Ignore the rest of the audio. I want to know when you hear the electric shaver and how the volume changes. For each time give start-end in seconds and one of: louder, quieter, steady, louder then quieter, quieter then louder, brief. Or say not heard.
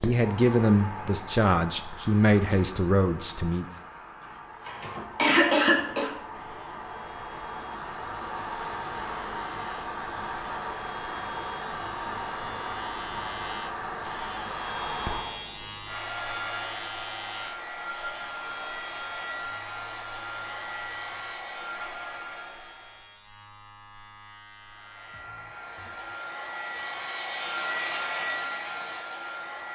4.6-26.1 louder then quieter.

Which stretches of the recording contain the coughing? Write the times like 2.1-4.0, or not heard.
4.0-6.1.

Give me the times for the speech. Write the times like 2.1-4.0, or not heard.
0.0-3.8.